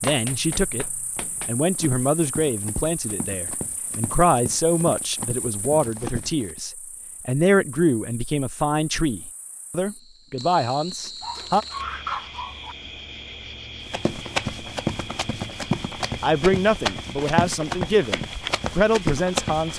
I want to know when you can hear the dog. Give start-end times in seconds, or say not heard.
11.2-12.8.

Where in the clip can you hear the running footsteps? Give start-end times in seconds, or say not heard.
0.0-6.6, 13.8-19.7.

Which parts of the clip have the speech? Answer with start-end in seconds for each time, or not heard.
0.0-11.7, 16.2-19.7.